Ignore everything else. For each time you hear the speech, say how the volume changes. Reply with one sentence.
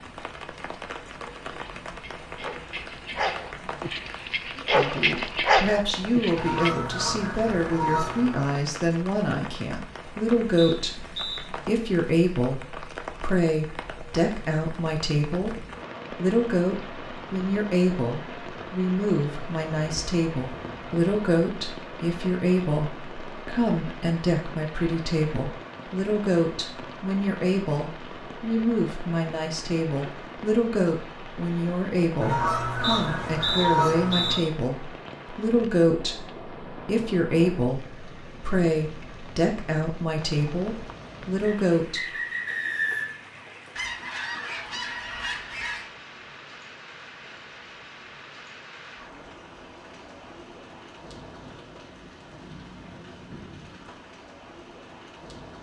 You can hear the speech from 4.5 to 42.0 s, at a steady volume.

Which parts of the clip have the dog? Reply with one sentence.
The dog can be heard from 1.2 to 6.7 s.